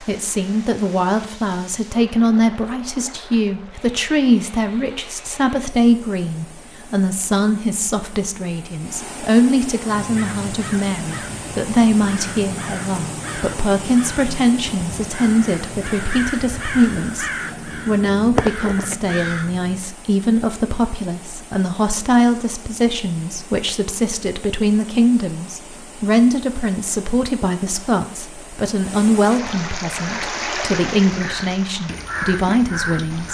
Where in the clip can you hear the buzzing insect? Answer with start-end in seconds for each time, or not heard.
not heard.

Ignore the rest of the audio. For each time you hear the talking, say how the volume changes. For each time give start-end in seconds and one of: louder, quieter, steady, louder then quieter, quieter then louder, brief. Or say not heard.
0.0-33.2 steady.